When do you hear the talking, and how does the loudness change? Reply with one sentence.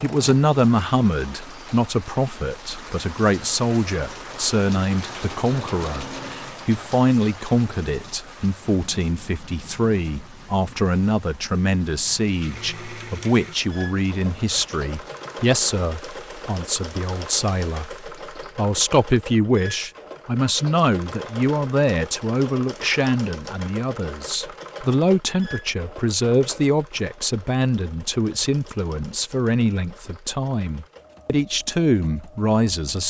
You can hear the talking from 0.0 to 33.0 s, at a steady volume.